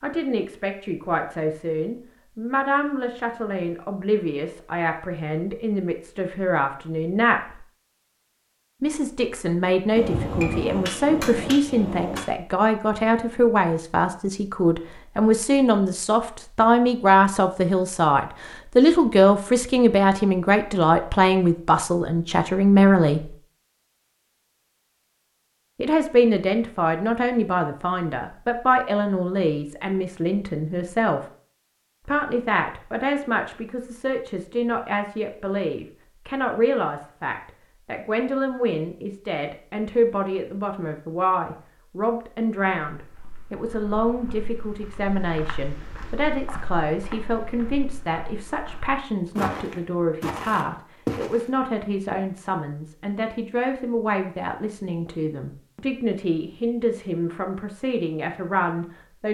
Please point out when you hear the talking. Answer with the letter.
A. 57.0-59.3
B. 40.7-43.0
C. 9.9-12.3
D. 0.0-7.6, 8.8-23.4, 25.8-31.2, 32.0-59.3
D.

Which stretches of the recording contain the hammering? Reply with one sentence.
You can hear the hammering from 9.9 to 12.3 s.